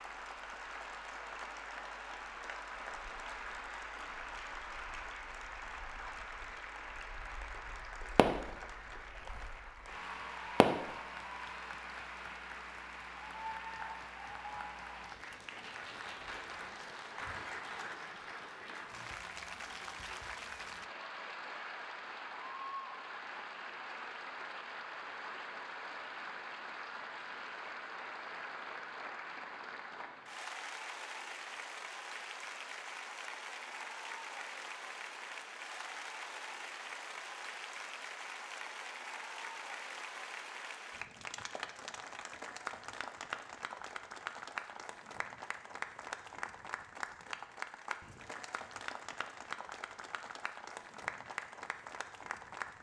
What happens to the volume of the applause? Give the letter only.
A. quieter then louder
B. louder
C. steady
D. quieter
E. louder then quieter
C.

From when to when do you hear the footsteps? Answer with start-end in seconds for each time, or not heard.
not heard.